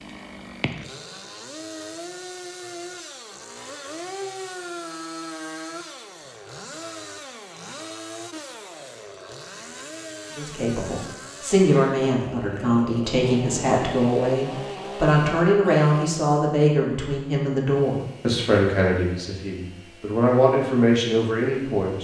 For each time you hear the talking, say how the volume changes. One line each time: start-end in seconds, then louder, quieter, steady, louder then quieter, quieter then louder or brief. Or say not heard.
10.3-21.9 steady.